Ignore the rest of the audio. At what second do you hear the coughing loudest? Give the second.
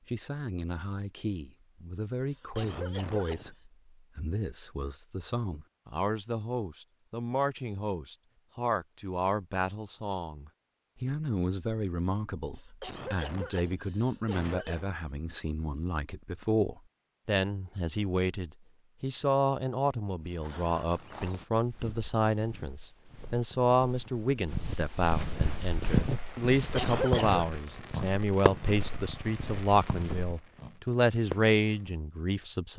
27 s.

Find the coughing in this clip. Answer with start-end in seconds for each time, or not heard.
2.2-3.6, 12.6-14.9, 26.6-27.5.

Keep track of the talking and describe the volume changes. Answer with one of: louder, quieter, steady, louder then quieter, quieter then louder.
louder.